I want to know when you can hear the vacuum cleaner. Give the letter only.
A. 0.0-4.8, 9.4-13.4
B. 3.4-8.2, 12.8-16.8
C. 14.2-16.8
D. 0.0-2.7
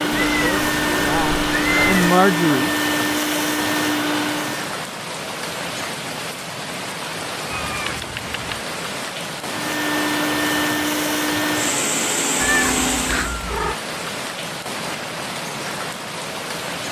A.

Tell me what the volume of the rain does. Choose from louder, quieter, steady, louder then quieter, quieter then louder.
steady.